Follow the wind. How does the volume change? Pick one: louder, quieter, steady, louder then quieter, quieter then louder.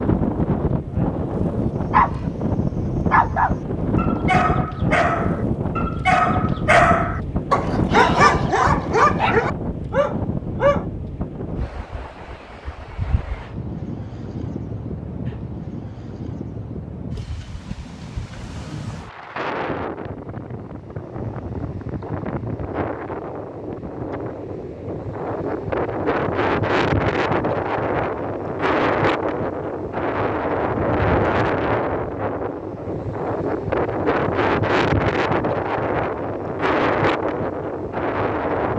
quieter then louder.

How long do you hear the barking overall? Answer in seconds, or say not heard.
9 s.